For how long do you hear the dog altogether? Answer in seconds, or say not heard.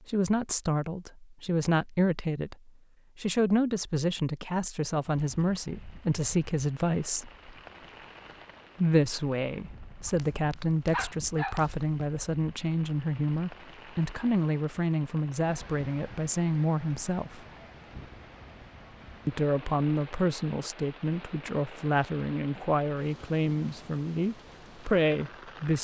2 s.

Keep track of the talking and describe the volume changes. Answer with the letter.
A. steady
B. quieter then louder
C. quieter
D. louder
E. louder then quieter
A.